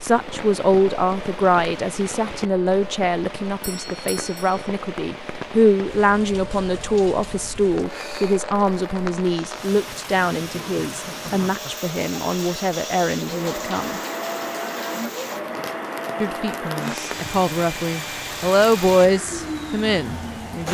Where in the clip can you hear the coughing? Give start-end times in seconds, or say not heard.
not heard.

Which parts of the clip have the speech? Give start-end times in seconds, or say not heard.
0.0-14.0, 16.2-20.6.